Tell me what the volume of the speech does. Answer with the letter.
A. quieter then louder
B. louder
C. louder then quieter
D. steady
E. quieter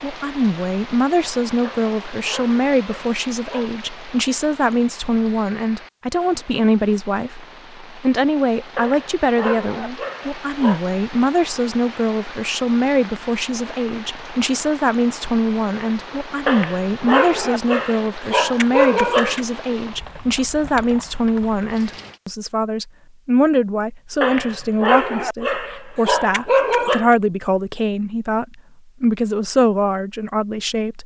D.